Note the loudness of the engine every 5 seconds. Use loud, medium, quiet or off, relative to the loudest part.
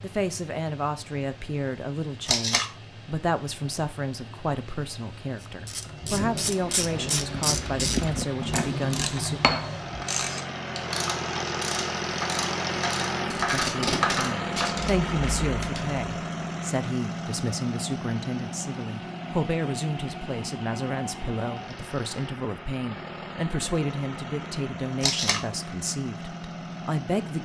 quiet, medium, loud, loud, medium, medium.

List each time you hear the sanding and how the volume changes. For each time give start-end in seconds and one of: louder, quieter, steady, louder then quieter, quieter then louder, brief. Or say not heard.
not heard.